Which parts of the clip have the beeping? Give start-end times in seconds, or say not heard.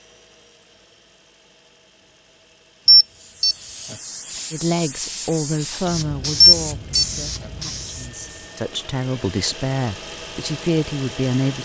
2.9-4.0, 6.4-7.0.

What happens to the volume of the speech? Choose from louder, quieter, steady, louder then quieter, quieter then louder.
quieter then louder.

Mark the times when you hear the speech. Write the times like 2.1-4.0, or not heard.
4.5-11.6.